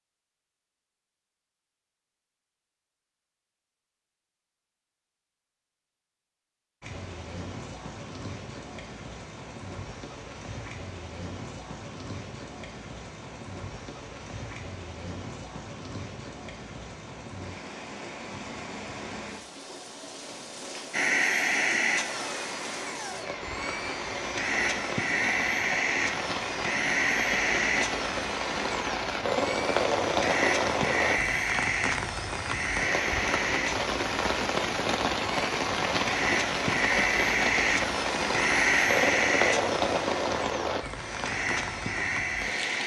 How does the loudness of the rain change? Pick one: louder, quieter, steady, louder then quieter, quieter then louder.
louder.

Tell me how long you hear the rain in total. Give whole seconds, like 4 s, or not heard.
36 s.